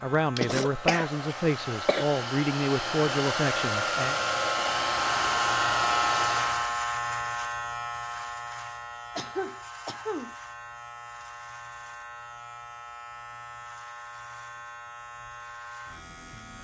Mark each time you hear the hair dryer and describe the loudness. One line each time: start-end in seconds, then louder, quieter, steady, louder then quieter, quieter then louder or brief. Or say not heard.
0.0-6.8 louder.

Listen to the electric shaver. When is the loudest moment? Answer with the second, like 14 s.
6 s.